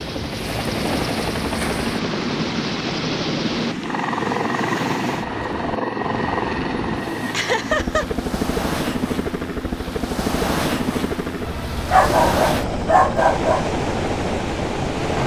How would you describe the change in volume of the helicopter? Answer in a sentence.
The loudness of the helicopter stays about the same.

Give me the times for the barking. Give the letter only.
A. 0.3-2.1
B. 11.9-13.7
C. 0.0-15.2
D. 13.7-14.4
B.